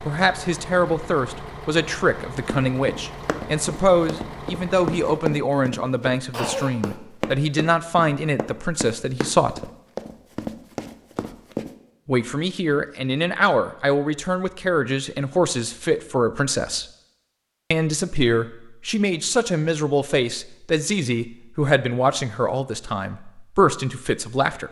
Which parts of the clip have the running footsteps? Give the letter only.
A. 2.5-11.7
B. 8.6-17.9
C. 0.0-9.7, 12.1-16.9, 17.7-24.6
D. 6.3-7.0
A.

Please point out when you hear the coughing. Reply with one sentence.
You can hear the coughing from 6.3 to 7.0 s.